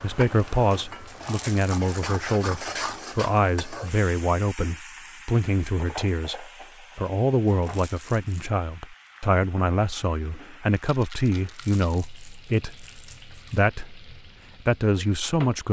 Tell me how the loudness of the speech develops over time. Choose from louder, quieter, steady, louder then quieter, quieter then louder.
steady.